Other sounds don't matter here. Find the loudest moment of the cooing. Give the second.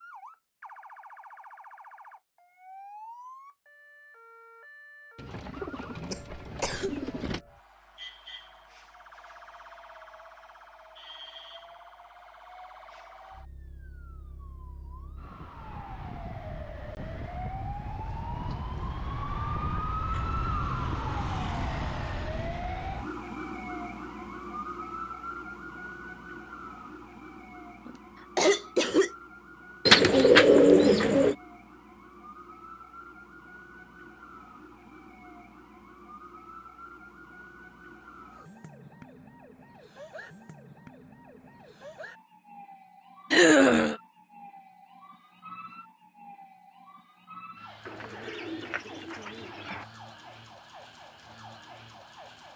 30 s.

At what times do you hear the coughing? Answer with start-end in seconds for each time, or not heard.
6.1-7.1, 27.9-29.1, 43.3-44.0.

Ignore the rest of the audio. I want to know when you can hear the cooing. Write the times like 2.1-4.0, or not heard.
5.2-7.4, 29.9-31.4, 47.9-49.9.